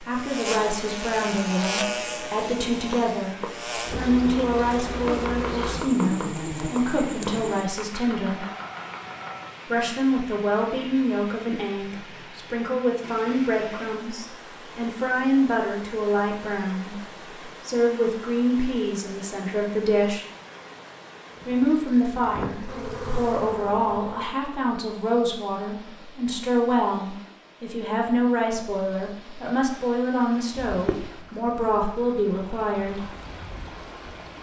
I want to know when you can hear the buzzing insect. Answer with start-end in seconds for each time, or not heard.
0.1-7.7, 21.3-24.3, 30.5-34.3.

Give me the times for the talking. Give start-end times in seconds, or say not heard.
0.0-8.4, 9.7-16.9, 17.6-20.2, 21.4-33.1.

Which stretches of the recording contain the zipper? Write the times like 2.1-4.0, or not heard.
not heard.